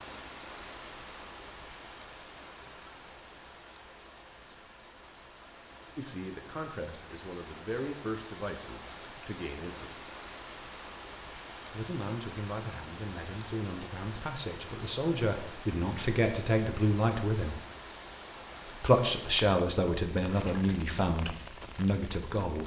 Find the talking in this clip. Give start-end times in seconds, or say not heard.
6.0-10.2, 11.7-17.6, 18.7-22.6.